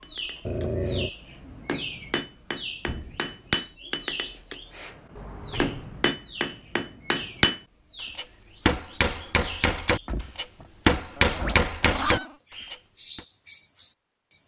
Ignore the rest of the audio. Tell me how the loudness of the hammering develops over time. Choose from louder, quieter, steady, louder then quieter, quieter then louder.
louder.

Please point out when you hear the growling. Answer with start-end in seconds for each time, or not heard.
0.5-1.1, 11.2-12.3.